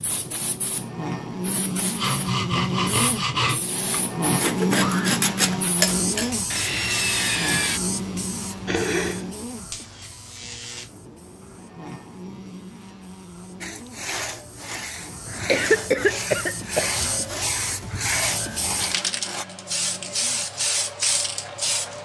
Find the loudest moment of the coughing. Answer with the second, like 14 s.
16 s.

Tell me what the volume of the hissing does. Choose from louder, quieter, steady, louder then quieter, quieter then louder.
quieter then louder.